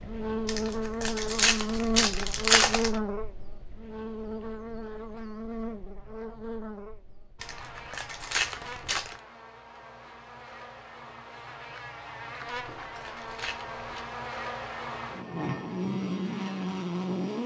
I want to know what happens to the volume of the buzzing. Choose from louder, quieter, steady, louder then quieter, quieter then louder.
quieter then louder.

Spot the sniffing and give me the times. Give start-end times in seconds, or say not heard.
not heard.